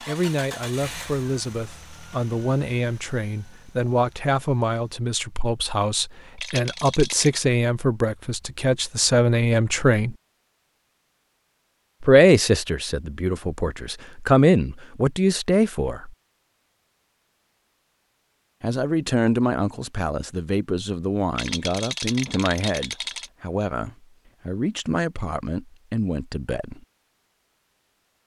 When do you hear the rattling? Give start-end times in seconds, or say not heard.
6.3-7.5, 21.4-23.3.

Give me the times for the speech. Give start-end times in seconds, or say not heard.
0.1-10.2, 12.0-16.1, 18.6-26.9.